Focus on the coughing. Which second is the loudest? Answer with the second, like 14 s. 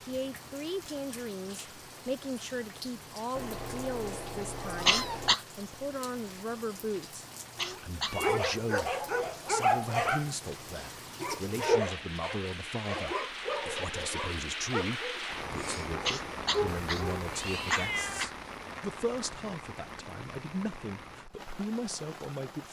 5 s.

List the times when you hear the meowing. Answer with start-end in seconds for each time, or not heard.
3.4-5.3, 7.5-8.5, 16.6-18.2.